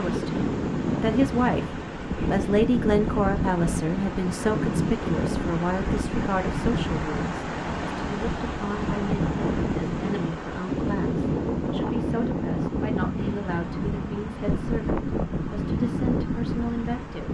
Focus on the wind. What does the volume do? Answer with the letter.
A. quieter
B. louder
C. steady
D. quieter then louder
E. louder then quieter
C.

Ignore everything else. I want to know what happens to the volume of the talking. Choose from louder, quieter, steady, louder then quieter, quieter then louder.
quieter.